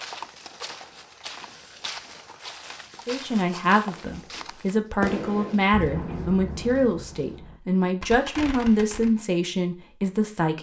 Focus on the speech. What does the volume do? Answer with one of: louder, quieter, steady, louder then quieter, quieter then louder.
steady.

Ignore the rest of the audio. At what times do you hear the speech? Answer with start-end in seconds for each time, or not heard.
3.0-10.5.